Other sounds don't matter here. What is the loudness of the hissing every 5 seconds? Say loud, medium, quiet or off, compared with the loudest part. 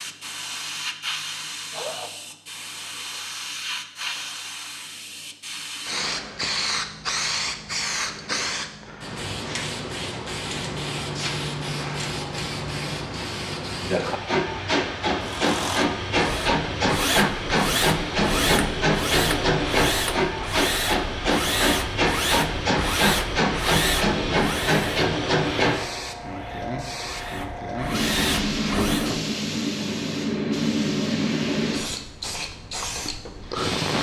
medium, medium, medium, loud, loud, loud, loud.